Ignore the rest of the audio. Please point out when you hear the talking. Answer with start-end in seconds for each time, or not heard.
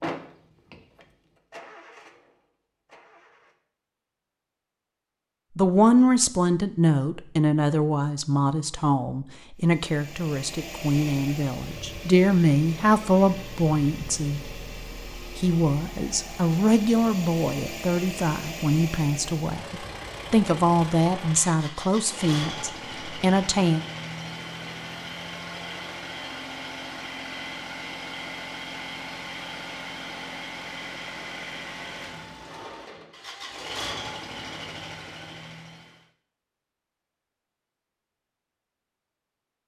5.5-14.6, 15.3-23.8.